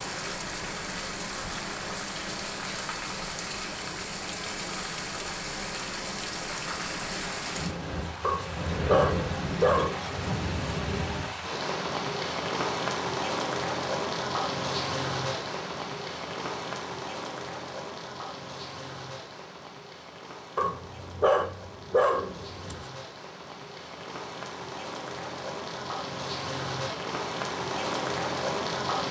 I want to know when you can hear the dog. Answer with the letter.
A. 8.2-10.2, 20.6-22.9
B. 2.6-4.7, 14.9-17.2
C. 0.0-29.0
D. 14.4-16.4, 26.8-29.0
A.